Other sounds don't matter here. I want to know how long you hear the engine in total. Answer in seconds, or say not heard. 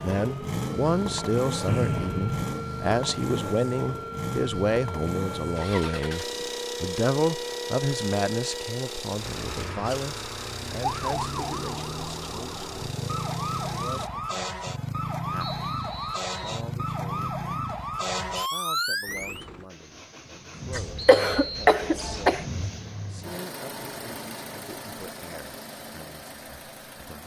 22 s.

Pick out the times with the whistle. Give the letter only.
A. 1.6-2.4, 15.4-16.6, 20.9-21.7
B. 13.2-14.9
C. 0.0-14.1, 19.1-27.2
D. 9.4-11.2
A.